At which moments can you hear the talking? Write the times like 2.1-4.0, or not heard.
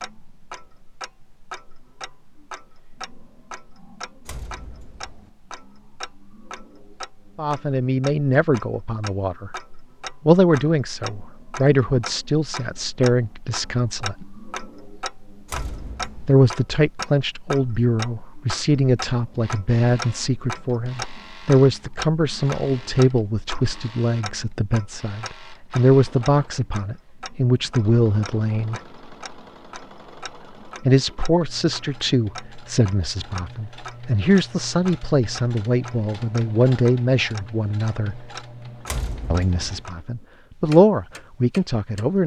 7.3-9.5, 10.2-14.2, 16.2-28.8, 30.9-38.2, 39.3-42.2.